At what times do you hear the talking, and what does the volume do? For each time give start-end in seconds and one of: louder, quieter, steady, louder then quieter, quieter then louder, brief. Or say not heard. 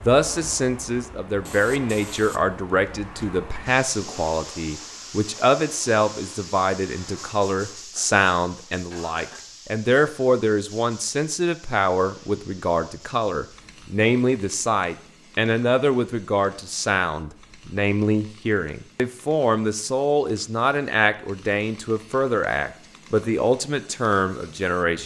0.1-25.0 steady.